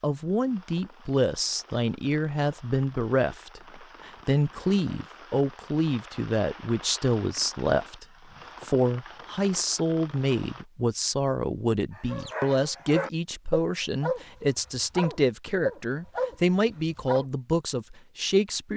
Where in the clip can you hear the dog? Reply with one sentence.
You can hear the dog from 11.9 to 17.2 s.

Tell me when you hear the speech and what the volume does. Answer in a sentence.
The speech can be heard from 0.0 to 18.7 s, at a steady volume.